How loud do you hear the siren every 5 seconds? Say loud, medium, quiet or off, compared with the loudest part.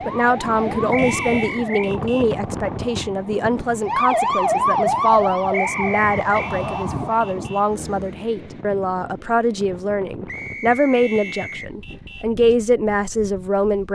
loud, loud, off.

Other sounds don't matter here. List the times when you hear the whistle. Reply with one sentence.
The whistle can be heard from 0.9 to 1.9 s, from 5.5 to 6.5 s and from 10.2 to 11.7 s.